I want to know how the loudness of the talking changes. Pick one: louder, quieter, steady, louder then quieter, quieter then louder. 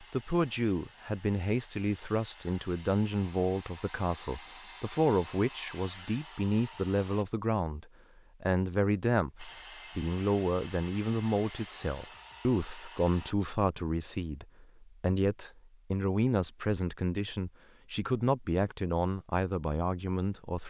steady.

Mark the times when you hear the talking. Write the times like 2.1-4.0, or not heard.
0.0-20.6.